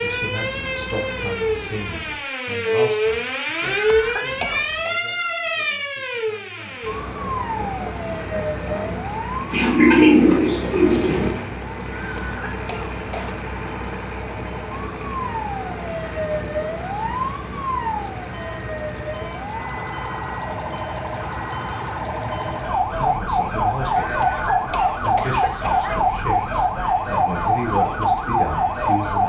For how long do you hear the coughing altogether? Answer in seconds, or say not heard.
5 s.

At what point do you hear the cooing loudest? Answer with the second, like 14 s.
10 s.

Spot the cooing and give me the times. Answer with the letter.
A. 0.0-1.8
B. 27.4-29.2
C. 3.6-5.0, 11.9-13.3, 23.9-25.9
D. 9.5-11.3
D.